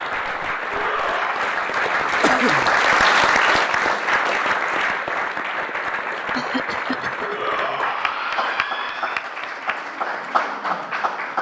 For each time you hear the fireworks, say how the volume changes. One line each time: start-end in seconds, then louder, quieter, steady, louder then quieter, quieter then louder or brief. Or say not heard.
not heard.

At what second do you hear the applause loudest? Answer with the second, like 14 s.
3 s.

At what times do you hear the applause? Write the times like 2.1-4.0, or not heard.
0.0-11.3.